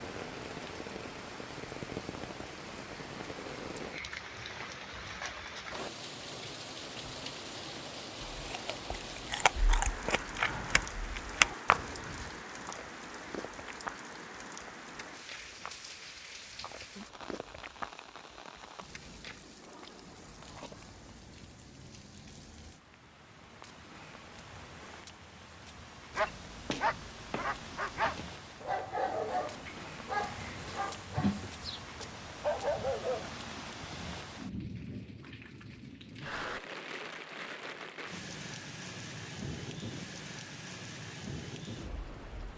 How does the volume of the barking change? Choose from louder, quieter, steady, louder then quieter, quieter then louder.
steady.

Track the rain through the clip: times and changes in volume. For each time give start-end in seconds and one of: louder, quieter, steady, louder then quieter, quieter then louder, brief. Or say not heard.
0.0-42.5 quieter then louder.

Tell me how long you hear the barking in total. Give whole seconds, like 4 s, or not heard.
7 s.